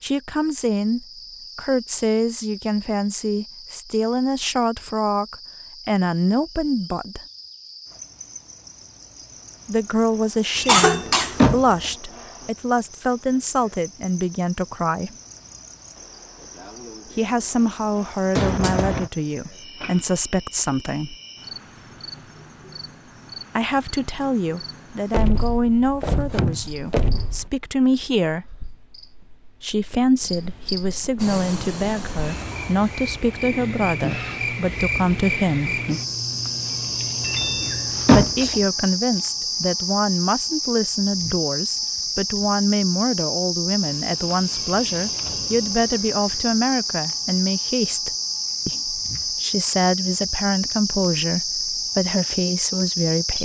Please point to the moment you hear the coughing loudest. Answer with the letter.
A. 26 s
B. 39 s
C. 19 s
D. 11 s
D.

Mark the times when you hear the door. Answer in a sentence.
The door can be heard from 10.6 to 11.9 s, from 25.1 to 27.4 s and from 37.2 to 38.5 s.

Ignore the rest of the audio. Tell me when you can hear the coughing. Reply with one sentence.
You can hear the coughing from 10.7 to 11.6 s, from 18.4 to 19.1 s and from 37.6 to 38.6 s.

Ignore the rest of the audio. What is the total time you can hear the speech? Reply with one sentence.
You can hear the speech for 43 seconds altogether.